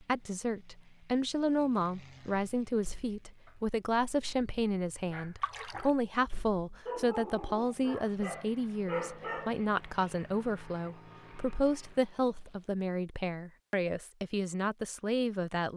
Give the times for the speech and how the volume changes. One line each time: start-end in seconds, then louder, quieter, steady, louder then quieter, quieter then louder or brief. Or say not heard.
0.0-15.7 steady.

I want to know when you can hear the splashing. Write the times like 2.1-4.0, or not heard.
5.4-5.9.